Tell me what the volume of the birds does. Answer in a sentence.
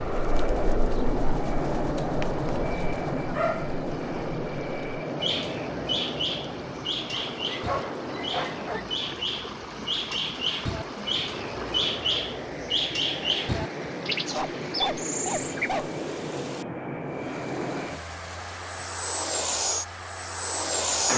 The volume of the birds goes up.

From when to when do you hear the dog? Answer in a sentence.
You can hear the dog from 3.3 to 4.2 s, from 7.1 to 8.8 s and from 14.3 to 16.0 s.